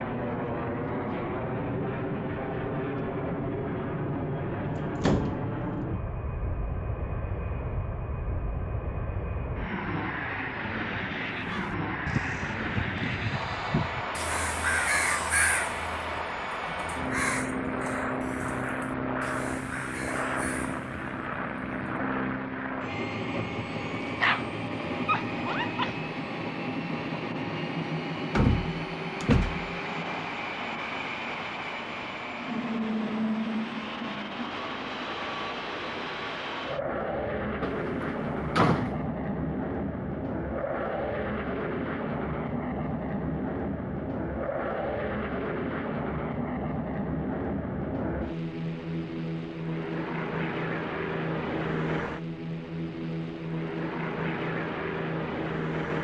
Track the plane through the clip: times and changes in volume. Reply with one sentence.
The plane can be heard from 0.0 to 55.9 s, at a steady volume.